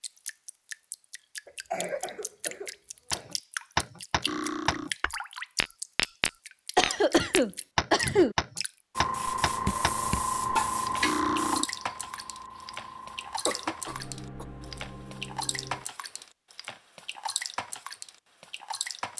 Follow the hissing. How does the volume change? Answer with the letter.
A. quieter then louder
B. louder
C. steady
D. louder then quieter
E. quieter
E.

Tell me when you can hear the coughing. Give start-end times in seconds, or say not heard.
1.4-3.4, 6.8-8.3, 13.4-14.4.